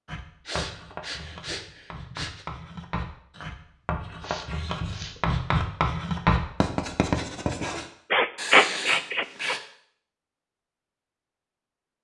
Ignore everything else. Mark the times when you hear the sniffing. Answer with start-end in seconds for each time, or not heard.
0.5-2.5, 4.2-5.2, 8.1-9.6.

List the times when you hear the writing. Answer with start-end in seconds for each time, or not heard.
0.1-9.6.